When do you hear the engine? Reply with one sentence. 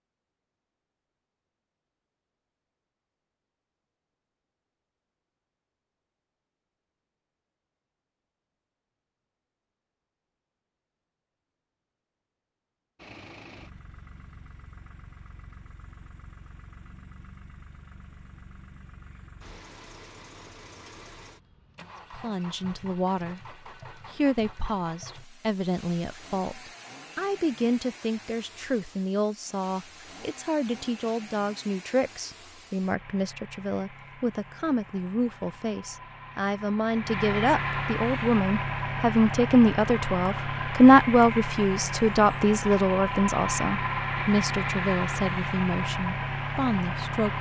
The engine can be heard from 12.9 to 47.3 s.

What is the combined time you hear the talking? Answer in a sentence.
You can hear the talking for 25 seconds altogether.